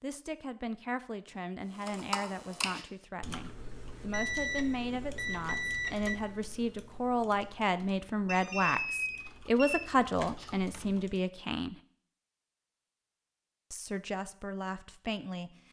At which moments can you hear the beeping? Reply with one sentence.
You can hear the beeping from 4.1 to 6.2 s and from 8.2 to 9.8 s.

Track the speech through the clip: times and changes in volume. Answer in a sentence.
The speech can be heard from 0.0 to 11.8 s, getting louder; and briefly from 13.7 to 15.6 s.